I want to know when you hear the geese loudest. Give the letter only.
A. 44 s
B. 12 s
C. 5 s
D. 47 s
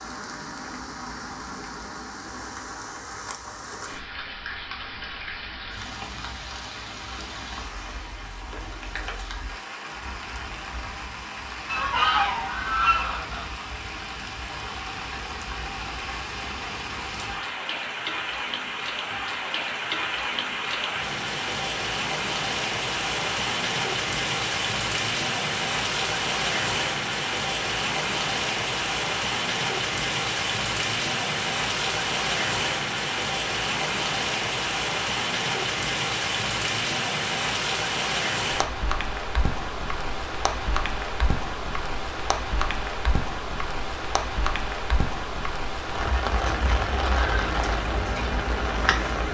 B.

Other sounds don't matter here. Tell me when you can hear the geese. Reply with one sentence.
The geese can be heard from 11.7 to 13.7 s.